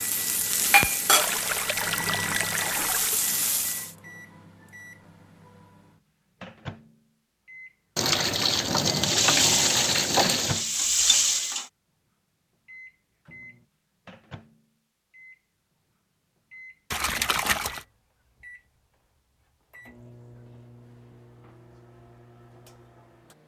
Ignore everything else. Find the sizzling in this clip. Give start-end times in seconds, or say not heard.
0.0-3.9, 9.0-11.7.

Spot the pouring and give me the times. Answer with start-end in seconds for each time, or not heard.
1.1-3.1, 8.0-10.7, 16.9-17.9.